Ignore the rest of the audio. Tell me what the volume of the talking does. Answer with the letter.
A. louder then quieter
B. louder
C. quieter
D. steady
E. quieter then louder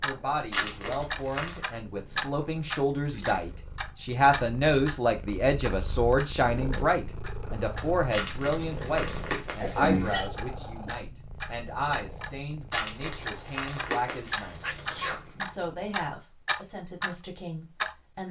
A.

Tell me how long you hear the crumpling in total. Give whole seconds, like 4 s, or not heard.
6 s.